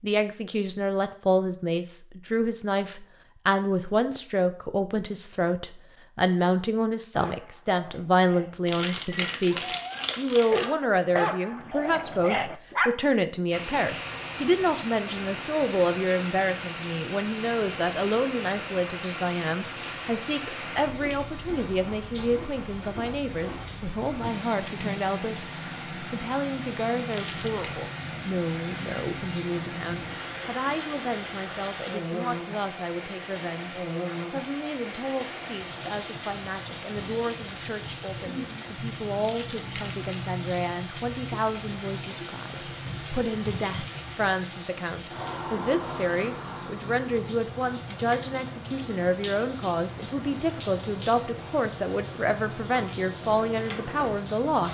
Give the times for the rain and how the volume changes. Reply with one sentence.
The rain can be heard from 13.5 to 54.6 s, at a steady volume.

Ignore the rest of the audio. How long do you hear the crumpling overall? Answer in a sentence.
The crumpling can be heard for 4 seconds in total.